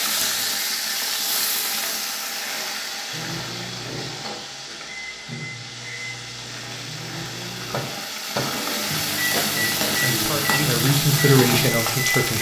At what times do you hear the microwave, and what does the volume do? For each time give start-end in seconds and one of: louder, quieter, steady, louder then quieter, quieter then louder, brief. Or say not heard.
3.1-12.3 louder.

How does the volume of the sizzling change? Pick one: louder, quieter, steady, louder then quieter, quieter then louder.
quieter then louder.